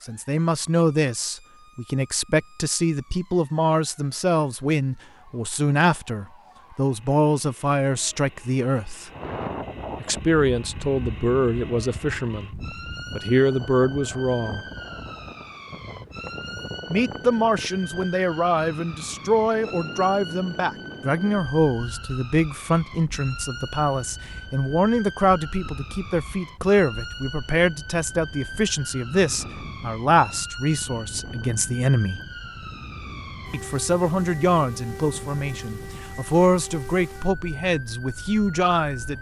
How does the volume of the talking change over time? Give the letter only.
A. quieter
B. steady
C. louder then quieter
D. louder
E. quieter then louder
B.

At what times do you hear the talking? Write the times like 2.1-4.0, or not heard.
0.0-9.1, 10.0-14.6, 16.9-32.2, 33.5-39.1.